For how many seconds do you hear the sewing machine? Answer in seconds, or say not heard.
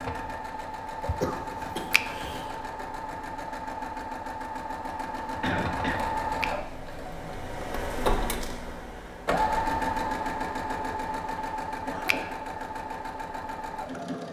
14 s.